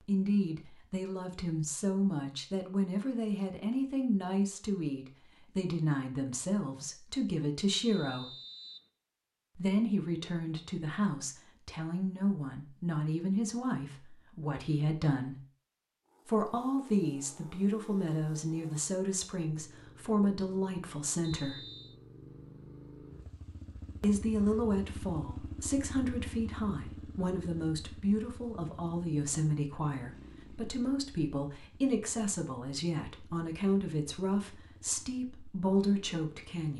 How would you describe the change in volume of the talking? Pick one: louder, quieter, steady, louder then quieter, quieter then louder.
steady.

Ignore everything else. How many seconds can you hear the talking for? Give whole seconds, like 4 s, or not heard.
32 s.